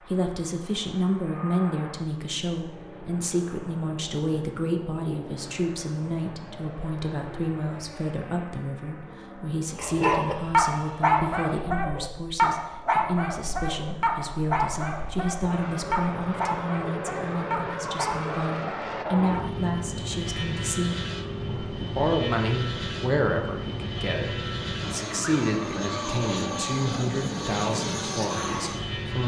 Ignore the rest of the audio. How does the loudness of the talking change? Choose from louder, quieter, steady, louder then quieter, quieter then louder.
steady.